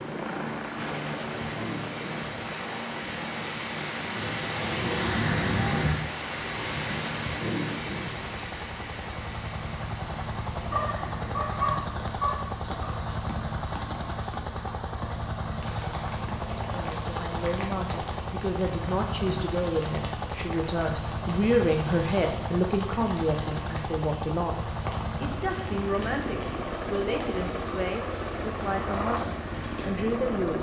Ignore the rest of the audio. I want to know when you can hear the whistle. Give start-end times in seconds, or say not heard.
not heard.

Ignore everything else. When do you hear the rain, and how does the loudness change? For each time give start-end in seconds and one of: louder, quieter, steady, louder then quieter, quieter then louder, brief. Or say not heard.
0.0-30.5 quieter.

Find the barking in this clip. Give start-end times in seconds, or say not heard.
10.7-12.9.